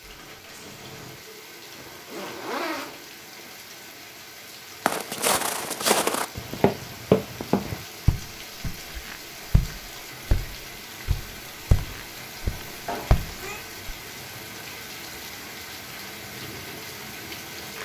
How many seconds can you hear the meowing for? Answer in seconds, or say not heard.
2 s.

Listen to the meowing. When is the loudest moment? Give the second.
13 s.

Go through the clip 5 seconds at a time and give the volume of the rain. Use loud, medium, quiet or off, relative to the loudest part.
medium, loud, loud, loud.